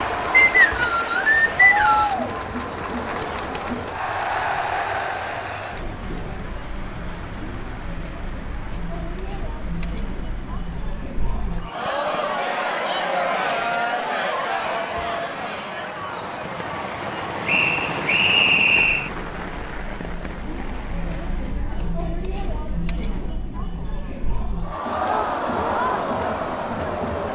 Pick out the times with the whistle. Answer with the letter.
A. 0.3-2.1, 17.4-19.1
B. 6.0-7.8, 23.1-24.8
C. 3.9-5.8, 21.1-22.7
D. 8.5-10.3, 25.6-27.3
A.